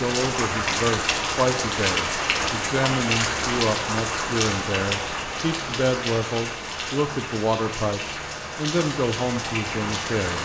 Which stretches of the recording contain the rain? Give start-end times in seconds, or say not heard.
0.0-10.4.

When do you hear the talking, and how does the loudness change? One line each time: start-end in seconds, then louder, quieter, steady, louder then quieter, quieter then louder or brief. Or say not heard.
0.0-10.4 steady.